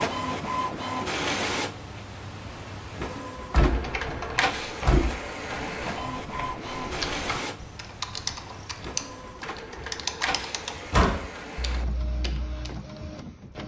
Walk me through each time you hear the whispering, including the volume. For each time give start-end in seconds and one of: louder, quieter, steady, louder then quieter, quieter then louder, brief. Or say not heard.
not heard.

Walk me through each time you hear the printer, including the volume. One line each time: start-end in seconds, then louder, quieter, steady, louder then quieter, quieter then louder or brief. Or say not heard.
0.0-13.6 quieter.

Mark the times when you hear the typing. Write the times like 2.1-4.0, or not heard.
3.6-12.8.